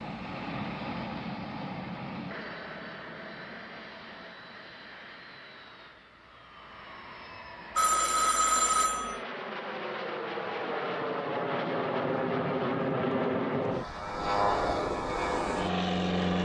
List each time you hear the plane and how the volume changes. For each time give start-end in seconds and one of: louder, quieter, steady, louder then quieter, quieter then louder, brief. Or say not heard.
0.0-16.3 quieter then louder.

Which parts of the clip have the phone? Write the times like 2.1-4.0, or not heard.
7.8-9.2.